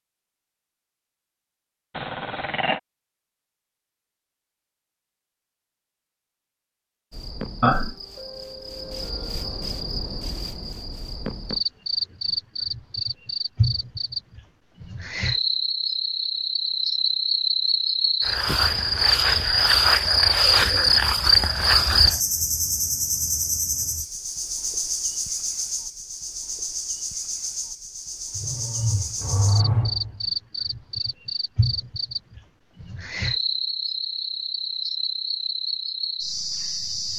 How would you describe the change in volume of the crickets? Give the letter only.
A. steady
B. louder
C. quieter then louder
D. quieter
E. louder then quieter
E.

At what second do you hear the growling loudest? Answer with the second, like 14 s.
30 s.